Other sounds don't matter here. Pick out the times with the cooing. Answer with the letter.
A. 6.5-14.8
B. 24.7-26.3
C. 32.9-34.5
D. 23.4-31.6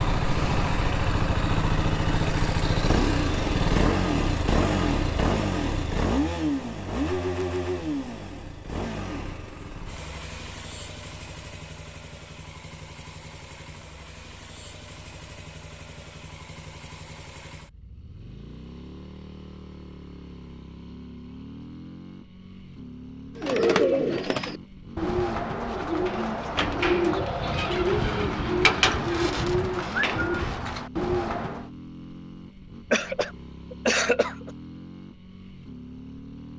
D.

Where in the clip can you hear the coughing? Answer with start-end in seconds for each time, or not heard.
32.9-34.5.